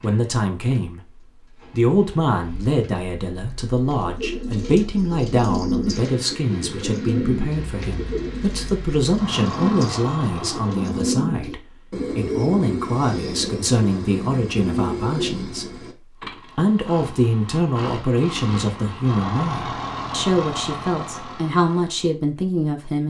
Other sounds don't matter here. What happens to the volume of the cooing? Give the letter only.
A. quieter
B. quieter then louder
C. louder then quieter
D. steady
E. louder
D.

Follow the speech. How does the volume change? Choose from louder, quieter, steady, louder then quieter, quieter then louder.
steady.